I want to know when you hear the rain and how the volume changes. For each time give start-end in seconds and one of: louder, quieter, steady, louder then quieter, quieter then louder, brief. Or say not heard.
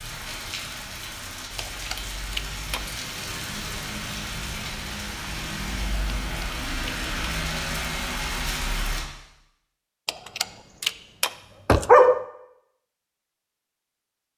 0.0-9.1 louder.